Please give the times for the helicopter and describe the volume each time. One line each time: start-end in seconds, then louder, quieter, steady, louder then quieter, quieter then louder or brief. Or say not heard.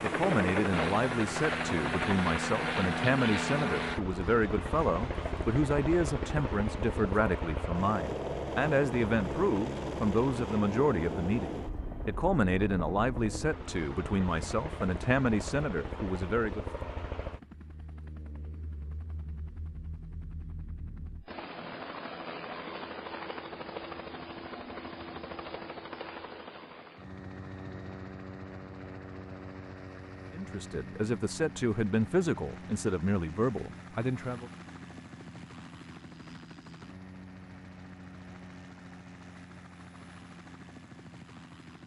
0.0-41.8 quieter.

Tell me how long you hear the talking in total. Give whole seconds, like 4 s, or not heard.
21 s.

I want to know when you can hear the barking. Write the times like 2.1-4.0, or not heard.
not heard.